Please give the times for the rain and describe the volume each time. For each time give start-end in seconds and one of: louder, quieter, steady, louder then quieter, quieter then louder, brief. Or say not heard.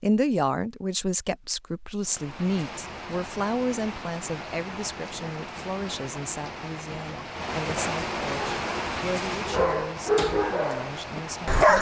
2.0-11.7 louder then quieter.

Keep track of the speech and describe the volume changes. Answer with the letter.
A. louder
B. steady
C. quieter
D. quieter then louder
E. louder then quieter
C.